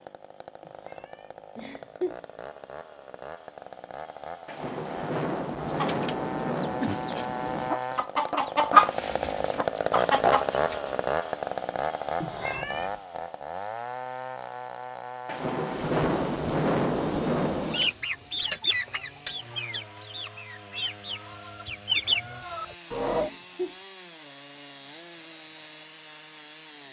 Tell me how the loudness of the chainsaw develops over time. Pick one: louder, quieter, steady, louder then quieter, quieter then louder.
louder then quieter.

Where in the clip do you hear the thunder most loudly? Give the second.
17 s.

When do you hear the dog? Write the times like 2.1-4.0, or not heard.
not heard.